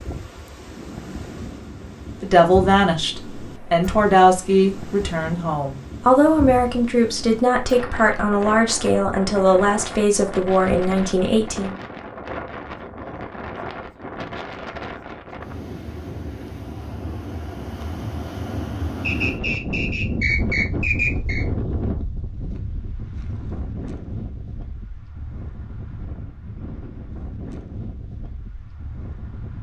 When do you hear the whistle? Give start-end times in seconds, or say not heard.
19.0-21.4.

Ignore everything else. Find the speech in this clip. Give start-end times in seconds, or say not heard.
2.2-11.8.